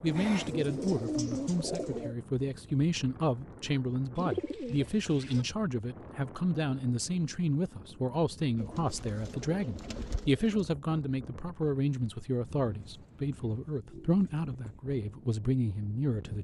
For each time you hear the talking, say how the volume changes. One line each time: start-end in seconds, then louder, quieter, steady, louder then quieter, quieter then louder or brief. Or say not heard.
0.0-16.3 steady.